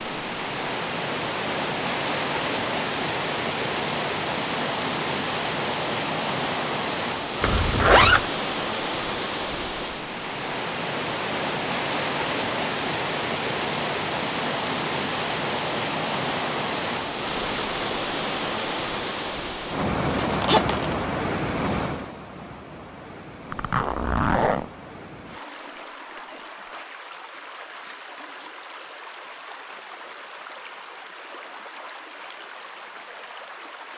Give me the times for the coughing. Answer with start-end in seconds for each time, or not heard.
not heard.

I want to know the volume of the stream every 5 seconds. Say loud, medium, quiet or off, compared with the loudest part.
loud, loud, loud, loud, loud, quiet, quiet.